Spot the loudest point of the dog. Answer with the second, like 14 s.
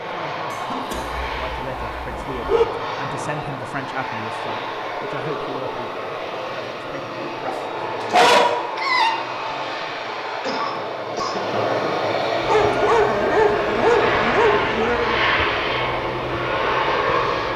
8 s.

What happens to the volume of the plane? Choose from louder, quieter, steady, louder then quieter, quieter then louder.
louder.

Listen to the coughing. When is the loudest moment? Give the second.
11 s.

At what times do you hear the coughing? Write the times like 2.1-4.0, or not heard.
0.5-1.2, 10.4-11.4.